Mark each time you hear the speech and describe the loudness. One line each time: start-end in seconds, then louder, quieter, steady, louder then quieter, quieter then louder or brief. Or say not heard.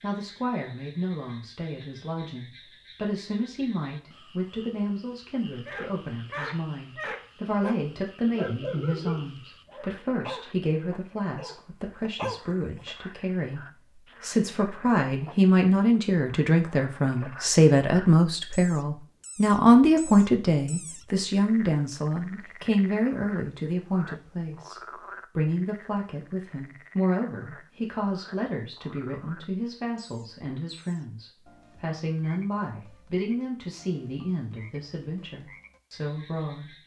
0.0-36.8 louder then quieter.